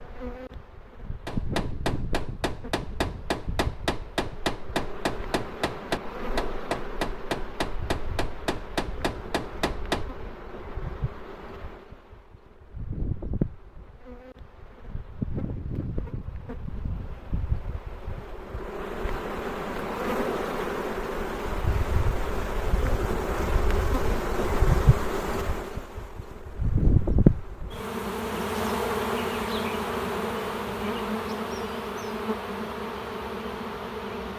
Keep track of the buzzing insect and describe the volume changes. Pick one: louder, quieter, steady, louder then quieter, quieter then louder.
louder.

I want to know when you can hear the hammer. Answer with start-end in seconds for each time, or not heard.
1.2-10.1.